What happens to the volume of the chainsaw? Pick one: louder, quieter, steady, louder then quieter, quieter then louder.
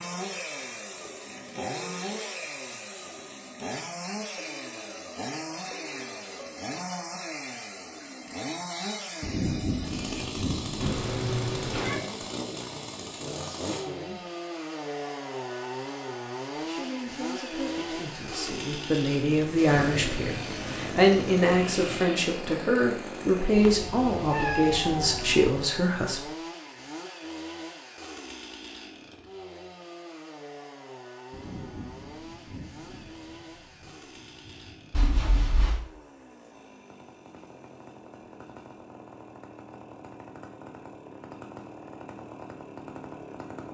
quieter.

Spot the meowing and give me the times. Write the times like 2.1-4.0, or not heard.
10.8-12.0, 23.5-25.5, 34.9-35.8.